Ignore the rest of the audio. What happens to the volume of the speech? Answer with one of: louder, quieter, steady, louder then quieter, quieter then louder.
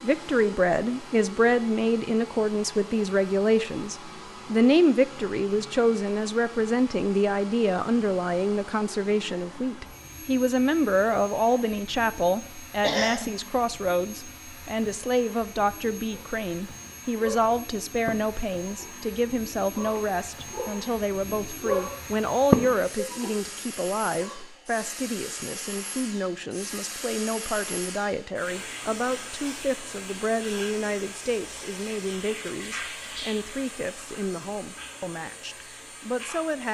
quieter.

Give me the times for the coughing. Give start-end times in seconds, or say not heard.
12.8-13.3.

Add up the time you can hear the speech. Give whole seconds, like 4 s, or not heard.
37 s.